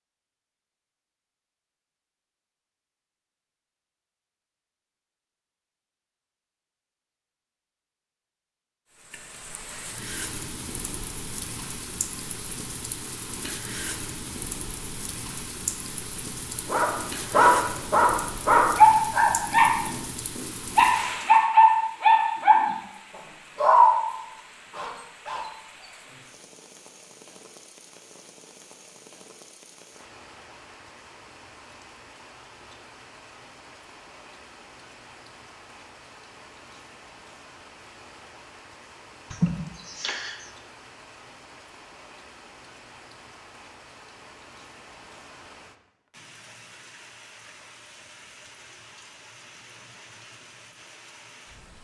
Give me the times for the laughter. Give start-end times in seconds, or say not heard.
39.3-40.5.